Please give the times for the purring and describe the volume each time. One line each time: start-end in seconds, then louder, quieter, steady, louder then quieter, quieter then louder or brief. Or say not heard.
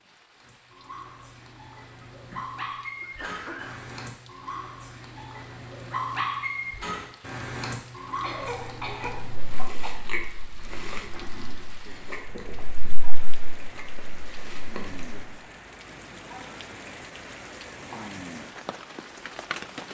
not heard.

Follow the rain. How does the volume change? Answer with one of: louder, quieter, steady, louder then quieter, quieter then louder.
louder.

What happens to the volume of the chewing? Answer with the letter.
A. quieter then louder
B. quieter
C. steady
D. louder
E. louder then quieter
A.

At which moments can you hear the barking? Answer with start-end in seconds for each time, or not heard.
0.3-9.7.